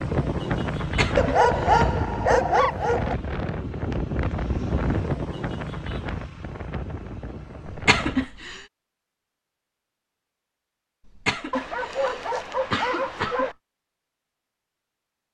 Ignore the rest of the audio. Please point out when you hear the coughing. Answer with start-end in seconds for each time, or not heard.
0.8-2.0, 7.7-8.7, 11.1-13.6.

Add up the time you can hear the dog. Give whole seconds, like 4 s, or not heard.
4 s.